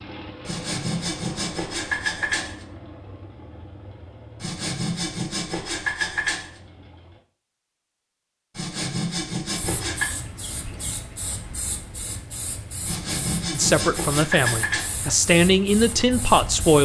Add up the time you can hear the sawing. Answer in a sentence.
You can hear the sawing for 8 seconds altogether.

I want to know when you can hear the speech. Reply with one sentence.
The speech can be heard from 13.5 to 16.8 s.